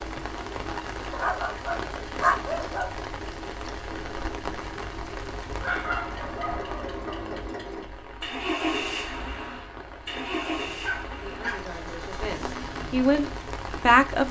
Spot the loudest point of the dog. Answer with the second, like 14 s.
2 s.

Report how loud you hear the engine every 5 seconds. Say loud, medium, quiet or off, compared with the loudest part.
medium, loud, loud.